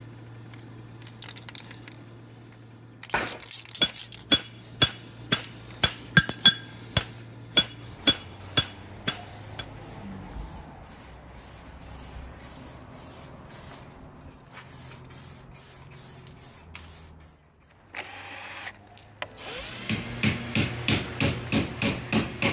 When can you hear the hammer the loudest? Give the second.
6 s.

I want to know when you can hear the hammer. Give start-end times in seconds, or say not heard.
3.1-9.7, 19.7-22.4.